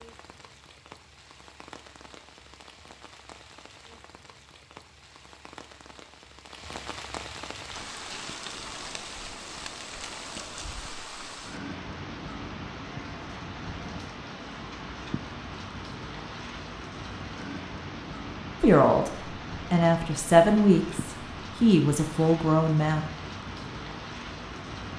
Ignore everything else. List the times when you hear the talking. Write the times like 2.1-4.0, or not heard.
18.6-23.1.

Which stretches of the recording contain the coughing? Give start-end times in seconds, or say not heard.
not heard.